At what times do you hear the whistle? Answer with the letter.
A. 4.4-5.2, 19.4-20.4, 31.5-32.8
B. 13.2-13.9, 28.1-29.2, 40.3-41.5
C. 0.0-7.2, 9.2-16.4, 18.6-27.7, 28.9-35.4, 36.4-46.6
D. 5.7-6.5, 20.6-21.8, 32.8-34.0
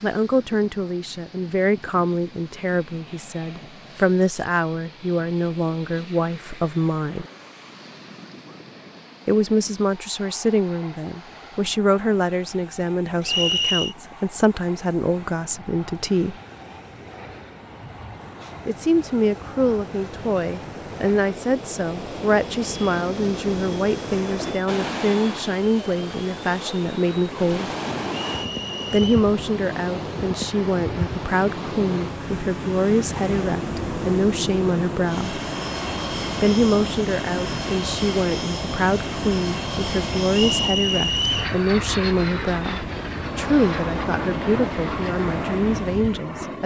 B.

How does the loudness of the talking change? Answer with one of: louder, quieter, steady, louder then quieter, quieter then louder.
steady.